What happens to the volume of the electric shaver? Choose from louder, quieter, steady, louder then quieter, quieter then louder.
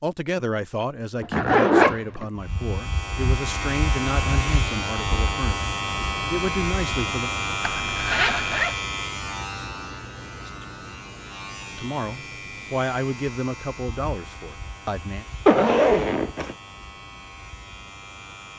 quieter.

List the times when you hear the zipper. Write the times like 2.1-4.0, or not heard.
1.2-2.2, 7.8-8.8, 15.4-16.6.